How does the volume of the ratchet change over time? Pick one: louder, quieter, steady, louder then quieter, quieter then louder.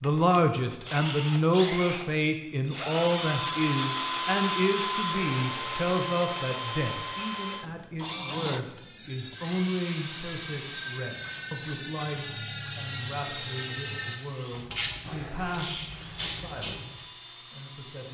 louder.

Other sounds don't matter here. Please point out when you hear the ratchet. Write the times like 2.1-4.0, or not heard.
8.6-17.1.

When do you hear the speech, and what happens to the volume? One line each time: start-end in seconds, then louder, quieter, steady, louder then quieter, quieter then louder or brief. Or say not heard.
0.0-18.1 quieter.